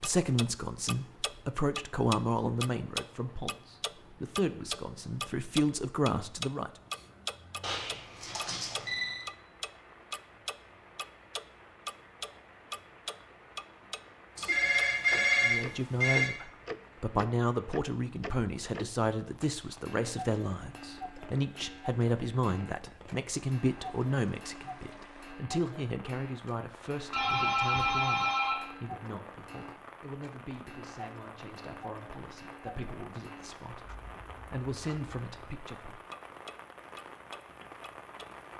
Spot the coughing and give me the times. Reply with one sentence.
You can't hear the coughing here.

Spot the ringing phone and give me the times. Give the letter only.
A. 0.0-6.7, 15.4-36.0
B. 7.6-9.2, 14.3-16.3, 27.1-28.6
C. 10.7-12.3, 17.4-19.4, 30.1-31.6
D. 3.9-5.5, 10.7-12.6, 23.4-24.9
B.